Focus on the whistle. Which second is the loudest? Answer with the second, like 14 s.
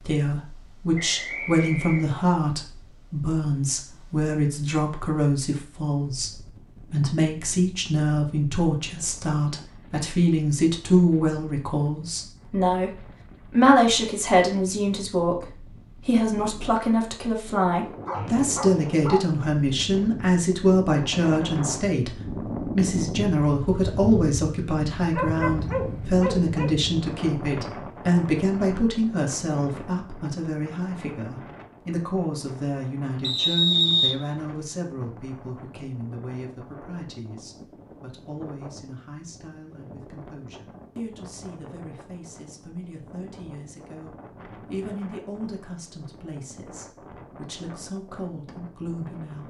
34 s.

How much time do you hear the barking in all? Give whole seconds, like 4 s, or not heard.
3 s.